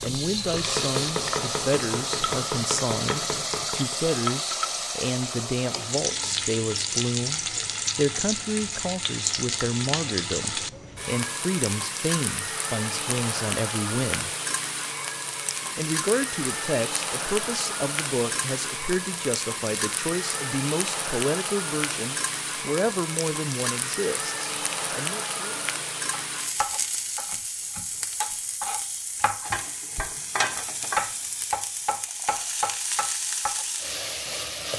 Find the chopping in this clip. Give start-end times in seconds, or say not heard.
0.0-4.0, 26.1-33.6.